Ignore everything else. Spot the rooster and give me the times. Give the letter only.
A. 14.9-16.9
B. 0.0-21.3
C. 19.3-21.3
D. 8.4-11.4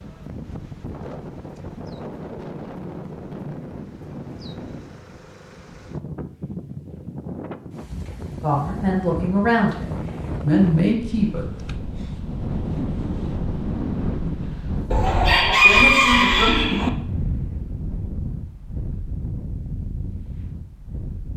A.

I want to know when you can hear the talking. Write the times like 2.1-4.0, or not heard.
8.4-11.4.